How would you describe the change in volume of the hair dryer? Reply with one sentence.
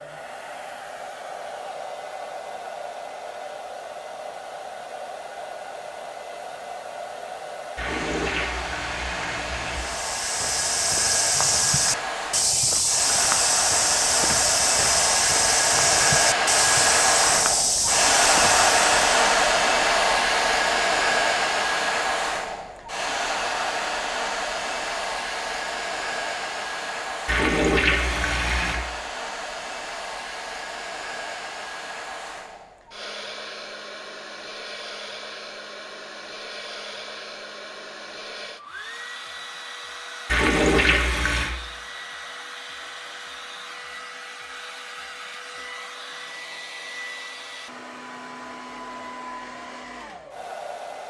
The loudness of the hair dryer goes up, then down.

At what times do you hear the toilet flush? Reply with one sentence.
The toilet flush can be heard from 7.8 to 9.8 s, from 27.2 to 28.8 s and from 40.2 to 41.5 s.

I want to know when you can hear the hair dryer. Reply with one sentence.
You can hear the hair dryer from 0.0 to 51.0 s.